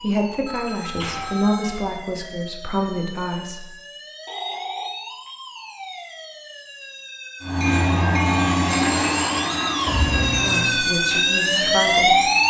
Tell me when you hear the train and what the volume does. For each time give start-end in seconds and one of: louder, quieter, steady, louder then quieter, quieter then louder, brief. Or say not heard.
7.4-12.4 quieter.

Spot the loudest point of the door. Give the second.
10 s.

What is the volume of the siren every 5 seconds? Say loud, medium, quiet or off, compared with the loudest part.
quiet, quiet, loud.